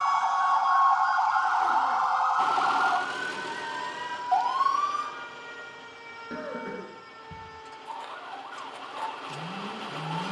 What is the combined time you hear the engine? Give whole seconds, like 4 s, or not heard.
8 s.